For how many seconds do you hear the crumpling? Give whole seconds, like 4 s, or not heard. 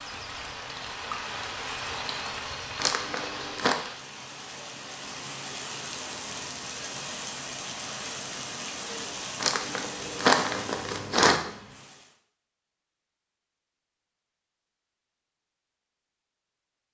3 s.